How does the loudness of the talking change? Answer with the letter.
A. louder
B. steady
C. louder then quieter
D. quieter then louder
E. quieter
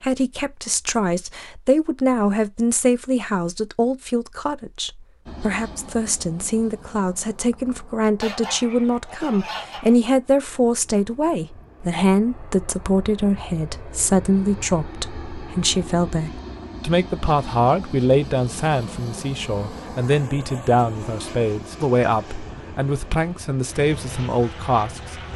B.